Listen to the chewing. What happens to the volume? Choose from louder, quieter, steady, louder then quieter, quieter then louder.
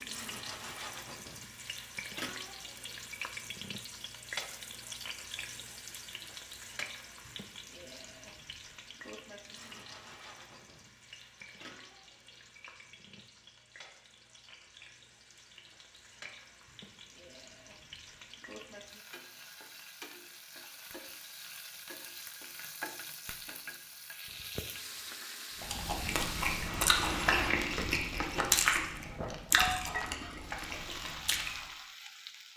quieter.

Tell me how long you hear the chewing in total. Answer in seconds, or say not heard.
6 s.